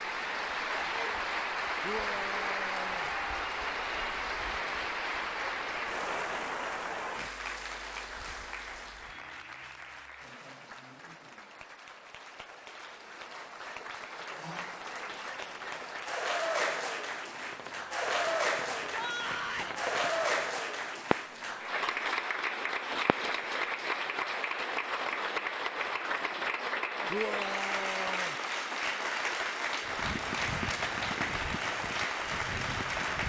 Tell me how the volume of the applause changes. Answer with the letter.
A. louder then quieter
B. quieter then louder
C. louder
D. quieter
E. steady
B.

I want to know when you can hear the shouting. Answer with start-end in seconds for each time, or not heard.
1.8-3.1, 18.9-19.8, 27.1-28.4.